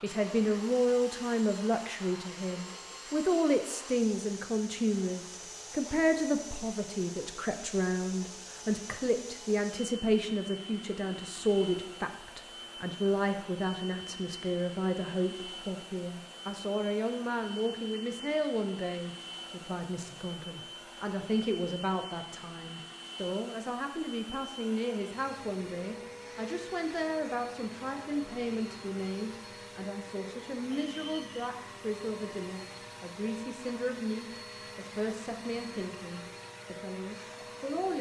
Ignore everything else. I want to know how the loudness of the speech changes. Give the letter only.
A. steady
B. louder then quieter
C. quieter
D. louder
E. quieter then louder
C.